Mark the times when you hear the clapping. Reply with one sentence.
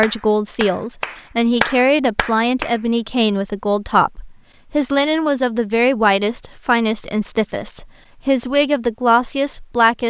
You can hear the clapping from 0.0 to 2.8 s.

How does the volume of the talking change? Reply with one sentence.
The loudness of the talking stays about the same.